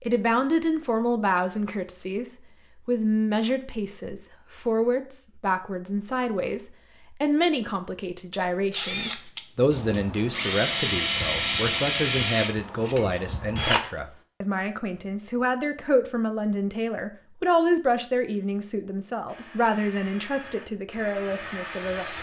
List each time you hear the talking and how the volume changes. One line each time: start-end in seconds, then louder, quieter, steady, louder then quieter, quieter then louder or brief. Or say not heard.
0.0-22.1 steady.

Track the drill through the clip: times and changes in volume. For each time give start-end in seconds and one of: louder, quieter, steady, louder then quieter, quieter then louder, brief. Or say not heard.
8.6-13.9 louder then quieter
19.2-22.1 brief.